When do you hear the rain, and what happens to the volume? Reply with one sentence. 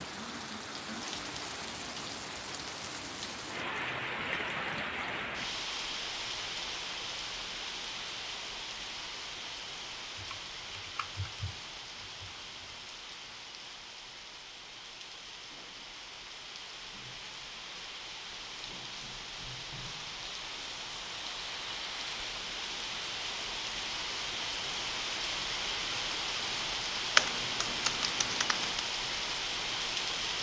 The rain can be heard from 0.0 to 30.3 s, getting quieter then louder.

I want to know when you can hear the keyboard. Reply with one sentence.
The keyboard can be heard from 10.2 to 12.8 s and from 27.1 to 28.8 s.